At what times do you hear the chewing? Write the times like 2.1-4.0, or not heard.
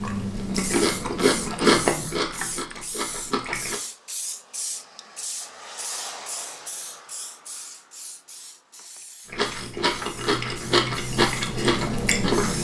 0.0-3.8, 9.2-12.5.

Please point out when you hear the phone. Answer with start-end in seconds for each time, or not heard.
not heard.